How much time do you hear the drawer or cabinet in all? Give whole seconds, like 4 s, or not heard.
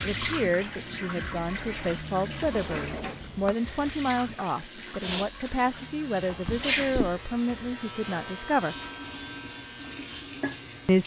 2 s.